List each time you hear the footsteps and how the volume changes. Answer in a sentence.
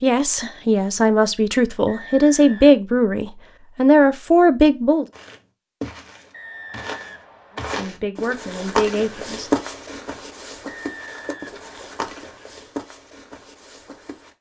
You can hear the footsteps from 5.1 to 14.3 s, getting louder then quieter.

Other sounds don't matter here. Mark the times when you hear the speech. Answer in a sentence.
You can hear the speech from 0.0 to 5.0 s and from 7.5 to 9.5 s.